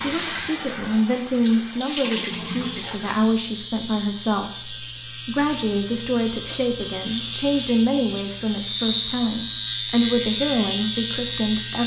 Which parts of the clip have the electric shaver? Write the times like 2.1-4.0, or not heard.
2.2-11.8.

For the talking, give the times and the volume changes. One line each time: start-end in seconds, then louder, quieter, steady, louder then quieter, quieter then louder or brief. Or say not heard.
0.0-11.8 steady.